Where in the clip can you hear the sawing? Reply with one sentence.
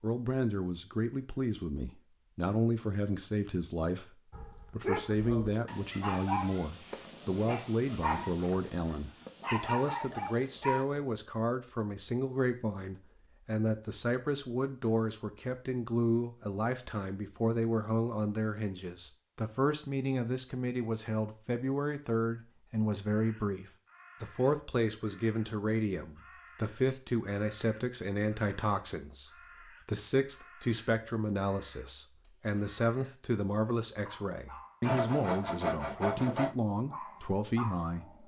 The sawing can be heard from 5.7 to 7.7 s and from 34.8 to 36.5 s.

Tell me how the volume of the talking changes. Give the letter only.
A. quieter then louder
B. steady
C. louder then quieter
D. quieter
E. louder
B.